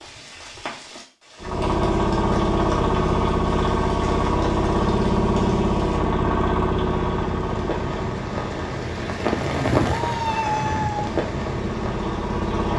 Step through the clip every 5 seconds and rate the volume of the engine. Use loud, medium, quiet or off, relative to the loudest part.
loud, loud, medium.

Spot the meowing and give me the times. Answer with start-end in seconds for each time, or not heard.
9.8-11.1.